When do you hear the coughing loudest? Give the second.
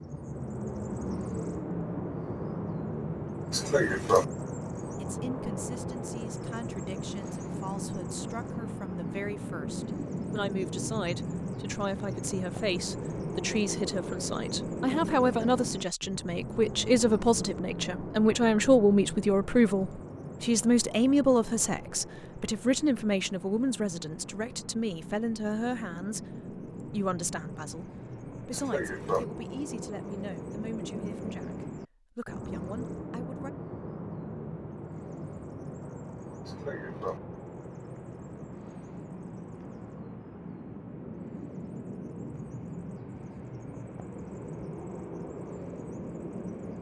4 s.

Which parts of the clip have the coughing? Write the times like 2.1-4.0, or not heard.
3.5-4.2, 28.5-29.2, 36.5-37.2.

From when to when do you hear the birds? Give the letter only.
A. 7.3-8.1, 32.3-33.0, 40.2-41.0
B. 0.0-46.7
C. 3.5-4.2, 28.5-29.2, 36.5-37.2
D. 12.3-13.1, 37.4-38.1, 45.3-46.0
B.